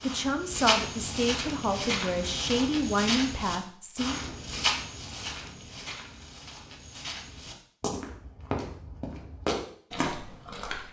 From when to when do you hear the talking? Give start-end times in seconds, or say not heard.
0.0-4.3.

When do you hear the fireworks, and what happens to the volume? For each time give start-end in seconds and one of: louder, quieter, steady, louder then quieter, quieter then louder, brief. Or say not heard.
not heard.